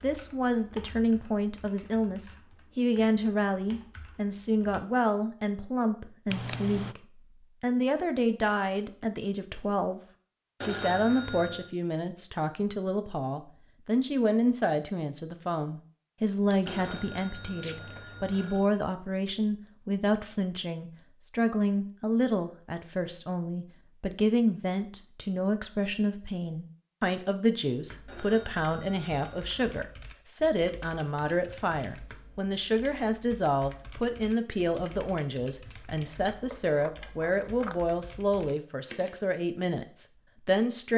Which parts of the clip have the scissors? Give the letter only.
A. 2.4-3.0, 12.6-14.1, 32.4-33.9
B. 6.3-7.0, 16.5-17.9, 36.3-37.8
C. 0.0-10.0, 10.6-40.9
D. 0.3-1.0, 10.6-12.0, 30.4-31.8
B.